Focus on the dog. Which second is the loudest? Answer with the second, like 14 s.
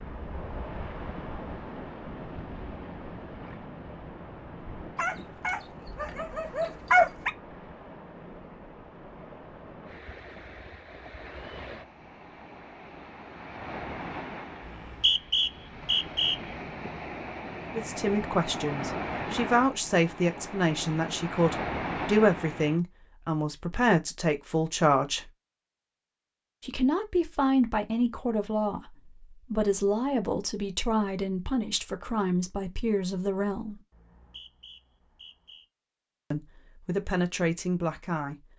7 s.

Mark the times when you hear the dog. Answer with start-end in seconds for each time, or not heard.
5.0-7.3.